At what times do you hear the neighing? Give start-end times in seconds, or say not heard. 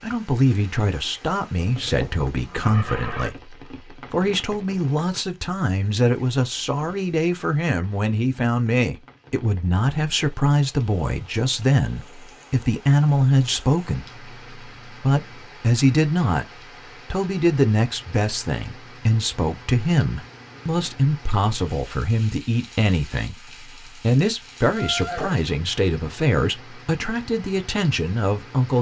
1.6-3.3, 24.6-25.4.